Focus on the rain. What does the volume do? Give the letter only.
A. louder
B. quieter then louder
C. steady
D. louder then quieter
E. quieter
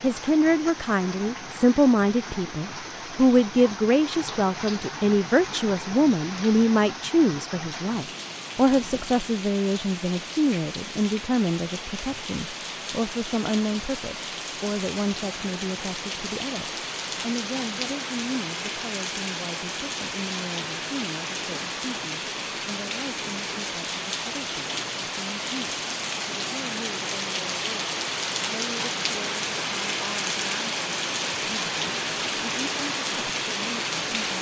A.